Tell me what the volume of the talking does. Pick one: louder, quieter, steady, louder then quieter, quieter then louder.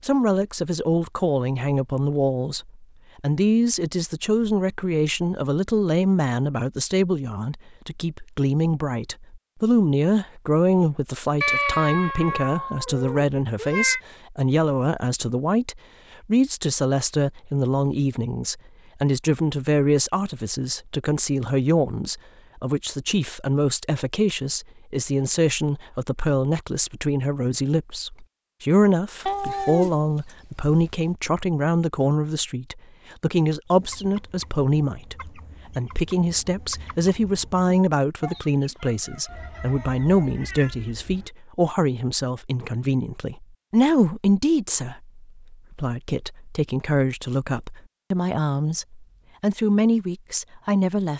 steady.